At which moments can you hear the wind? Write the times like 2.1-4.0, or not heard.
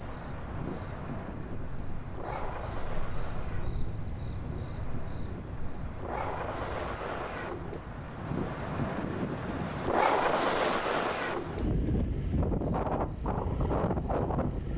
0.0-14.7.